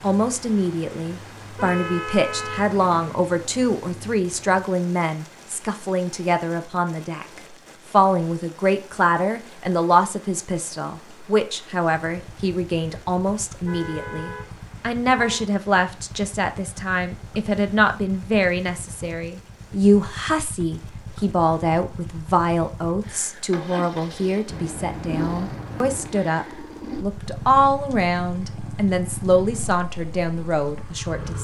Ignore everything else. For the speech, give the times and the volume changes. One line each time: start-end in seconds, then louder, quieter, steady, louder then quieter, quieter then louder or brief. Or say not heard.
0.0-31.3 steady.